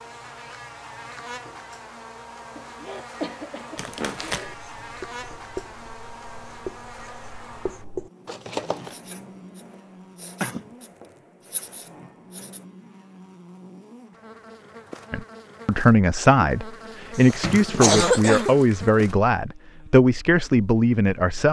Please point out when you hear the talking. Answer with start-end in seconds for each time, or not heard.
15.1-21.4.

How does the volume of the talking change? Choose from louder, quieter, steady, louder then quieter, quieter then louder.
steady.